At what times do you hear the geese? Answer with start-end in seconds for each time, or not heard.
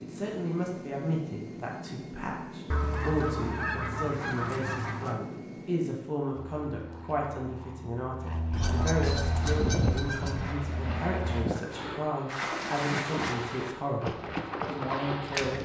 2.7-5.2, 8.5-10.6.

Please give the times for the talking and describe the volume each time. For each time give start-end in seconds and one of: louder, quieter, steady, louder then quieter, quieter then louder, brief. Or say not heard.
0.0-15.6 steady.